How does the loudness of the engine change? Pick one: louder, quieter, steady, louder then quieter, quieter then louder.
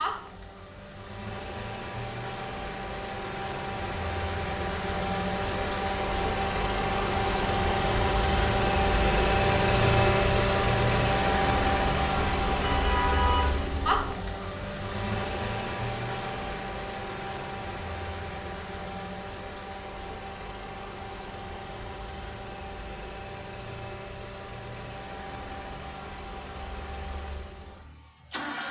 louder then quieter.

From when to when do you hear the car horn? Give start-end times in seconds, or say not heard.
12.2-14.2.